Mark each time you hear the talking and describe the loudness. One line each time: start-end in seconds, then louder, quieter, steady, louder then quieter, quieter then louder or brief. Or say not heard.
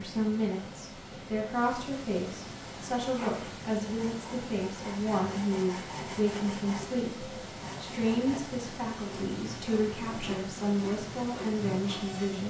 0.0-12.4 steady.